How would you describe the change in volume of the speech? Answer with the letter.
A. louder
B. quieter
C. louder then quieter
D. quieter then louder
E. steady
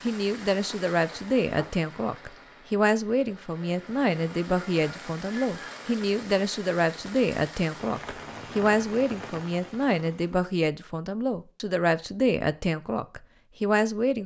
E.